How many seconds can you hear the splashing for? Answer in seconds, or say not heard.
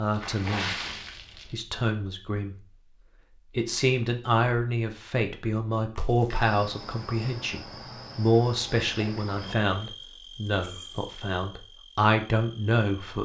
3 s.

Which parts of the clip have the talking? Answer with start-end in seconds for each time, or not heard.
0.0-0.8, 1.5-2.6, 3.5-13.1.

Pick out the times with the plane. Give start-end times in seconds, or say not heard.
not heard.